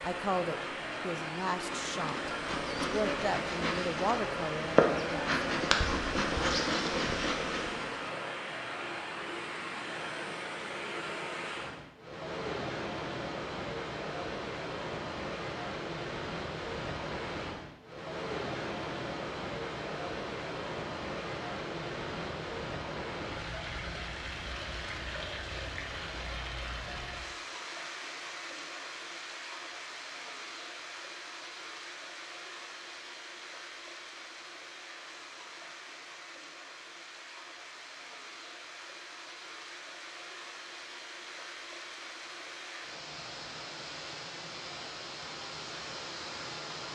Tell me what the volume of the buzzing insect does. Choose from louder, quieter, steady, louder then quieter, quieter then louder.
louder.